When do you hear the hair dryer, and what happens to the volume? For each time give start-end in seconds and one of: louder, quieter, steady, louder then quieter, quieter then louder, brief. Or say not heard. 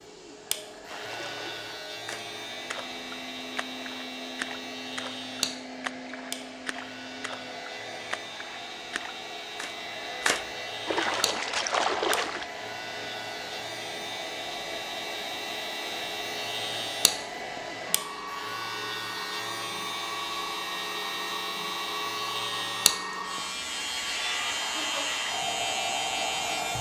0.0-26.7 louder.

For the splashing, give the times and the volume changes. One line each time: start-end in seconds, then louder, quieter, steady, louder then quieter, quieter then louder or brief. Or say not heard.
0.8-12.4 louder.